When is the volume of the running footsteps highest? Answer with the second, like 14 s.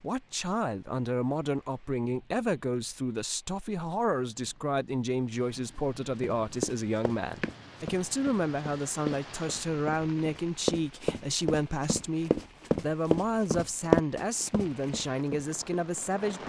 14 s.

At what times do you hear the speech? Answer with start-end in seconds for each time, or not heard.
0.0-16.4.